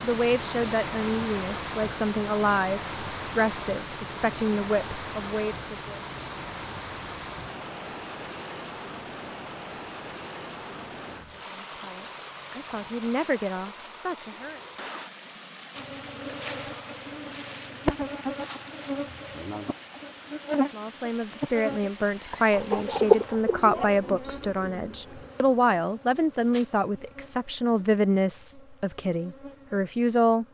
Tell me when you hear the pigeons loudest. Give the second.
23 s.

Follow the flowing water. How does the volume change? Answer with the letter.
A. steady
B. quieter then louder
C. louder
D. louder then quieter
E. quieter
E.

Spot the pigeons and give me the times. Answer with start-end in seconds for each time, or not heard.
22.1-25.3.